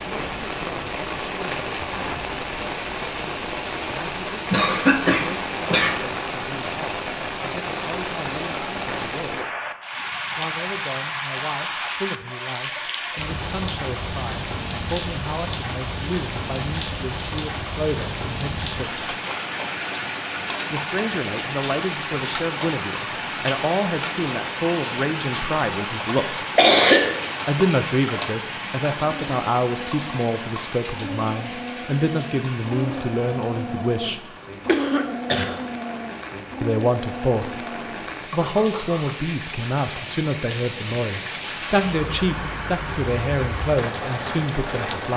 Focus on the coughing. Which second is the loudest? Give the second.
27 s.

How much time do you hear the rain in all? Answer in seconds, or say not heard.
45 s.